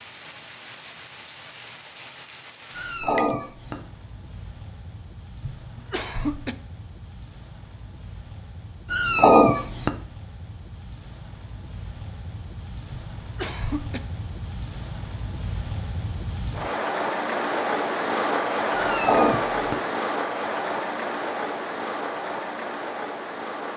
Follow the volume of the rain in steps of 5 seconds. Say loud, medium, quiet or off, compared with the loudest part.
quiet, quiet, quiet, loud, loud.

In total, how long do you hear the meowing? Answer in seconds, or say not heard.
3 s.